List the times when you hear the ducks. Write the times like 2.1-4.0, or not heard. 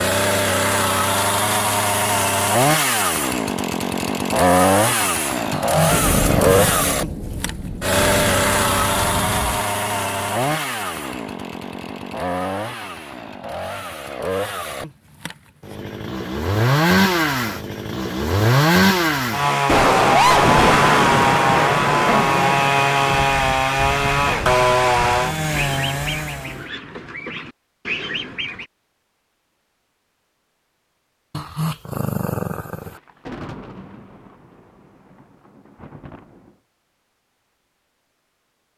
23.2-28.6.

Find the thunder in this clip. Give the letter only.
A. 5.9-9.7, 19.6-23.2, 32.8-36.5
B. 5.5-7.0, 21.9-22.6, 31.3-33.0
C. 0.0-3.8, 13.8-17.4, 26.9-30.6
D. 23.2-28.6
A.